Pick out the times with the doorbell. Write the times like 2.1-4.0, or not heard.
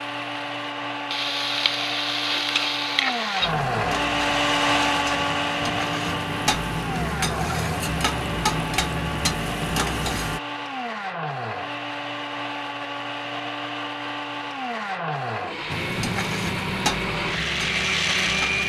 not heard.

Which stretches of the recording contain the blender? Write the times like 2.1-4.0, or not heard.
0.0-18.6.